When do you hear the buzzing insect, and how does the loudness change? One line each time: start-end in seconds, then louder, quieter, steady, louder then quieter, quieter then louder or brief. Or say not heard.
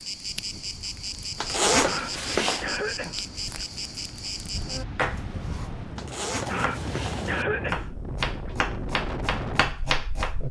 0.0-4.8 steady.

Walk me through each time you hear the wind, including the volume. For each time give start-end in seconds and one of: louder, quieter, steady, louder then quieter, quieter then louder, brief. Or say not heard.
0.0-10.4 louder.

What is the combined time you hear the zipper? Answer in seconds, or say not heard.
3 s.